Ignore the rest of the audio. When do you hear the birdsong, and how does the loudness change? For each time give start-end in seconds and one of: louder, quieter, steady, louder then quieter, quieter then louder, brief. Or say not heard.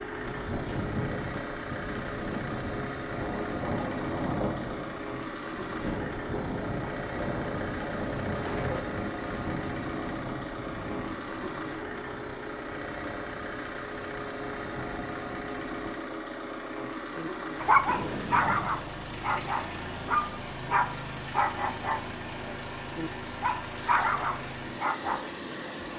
not heard.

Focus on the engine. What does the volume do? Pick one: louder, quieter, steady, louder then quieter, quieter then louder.
steady.